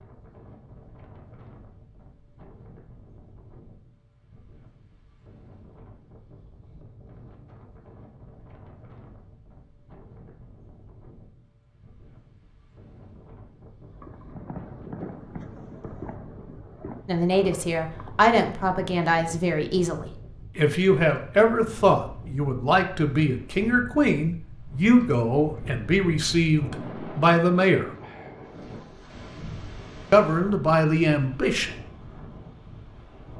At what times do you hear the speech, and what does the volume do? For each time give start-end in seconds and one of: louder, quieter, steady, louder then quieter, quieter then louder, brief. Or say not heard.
17.1-27.9 steady
30.1-31.7 brief.